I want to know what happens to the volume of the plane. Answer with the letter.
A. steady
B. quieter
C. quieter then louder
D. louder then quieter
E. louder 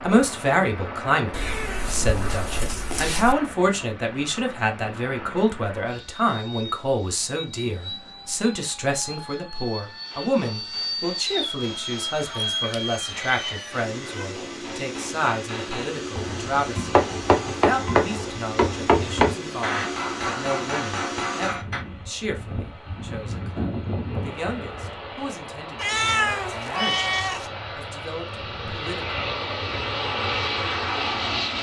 E.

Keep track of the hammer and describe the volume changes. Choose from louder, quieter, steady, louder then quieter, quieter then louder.
louder then quieter.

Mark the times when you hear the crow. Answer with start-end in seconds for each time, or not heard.
not heard.